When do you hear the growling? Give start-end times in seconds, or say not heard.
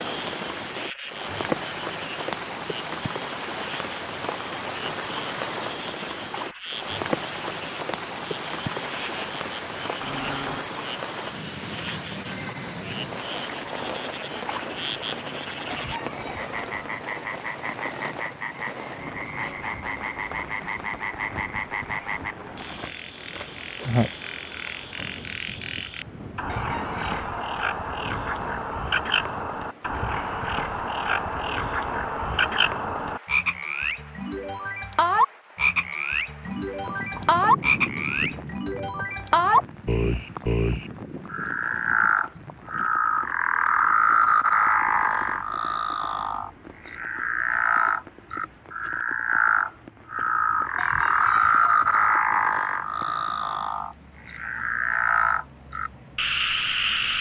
10.0-10.7.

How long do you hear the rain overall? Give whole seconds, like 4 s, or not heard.
57 s.